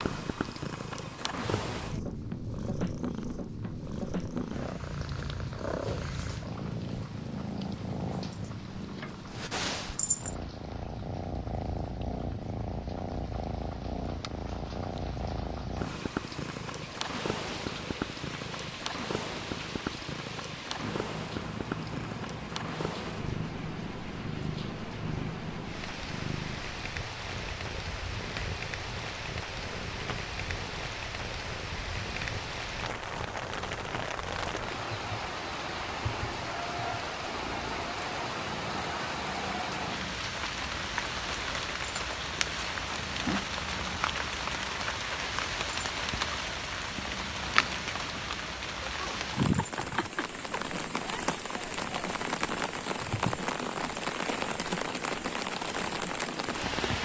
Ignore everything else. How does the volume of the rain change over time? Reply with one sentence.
The volume of the rain goes up.